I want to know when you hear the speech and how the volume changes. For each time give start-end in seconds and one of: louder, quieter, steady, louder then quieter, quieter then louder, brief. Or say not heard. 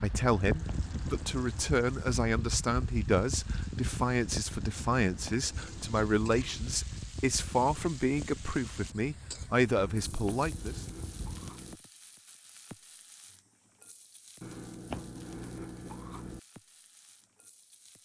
0.0-10.8 steady.